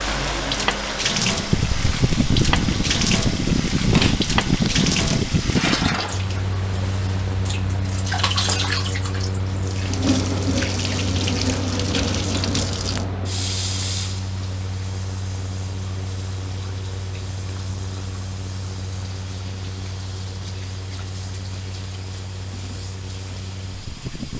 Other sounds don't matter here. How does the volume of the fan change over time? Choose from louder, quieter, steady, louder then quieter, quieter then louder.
quieter.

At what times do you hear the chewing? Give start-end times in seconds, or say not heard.
not heard.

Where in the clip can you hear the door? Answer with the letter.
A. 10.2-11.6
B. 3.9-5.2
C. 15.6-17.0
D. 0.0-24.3
B.